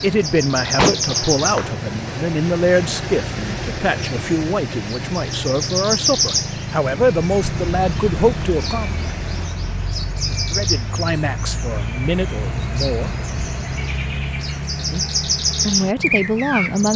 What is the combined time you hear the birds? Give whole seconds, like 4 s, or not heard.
17 s.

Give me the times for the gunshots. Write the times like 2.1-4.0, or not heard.
0.8-1.7.